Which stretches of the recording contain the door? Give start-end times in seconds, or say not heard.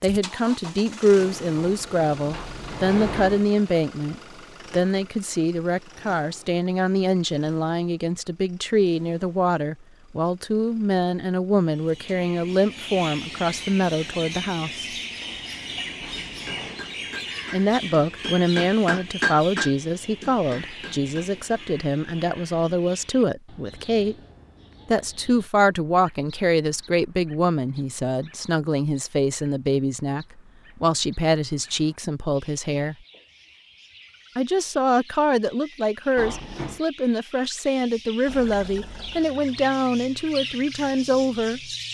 1.6-3.5, 15.2-16.9, 36.1-36.8.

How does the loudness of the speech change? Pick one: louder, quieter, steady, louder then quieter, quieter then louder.
steady.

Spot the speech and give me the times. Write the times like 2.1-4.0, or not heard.
0.0-14.9, 17.5-24.1, 24.9-33.0, 34.4-41.6.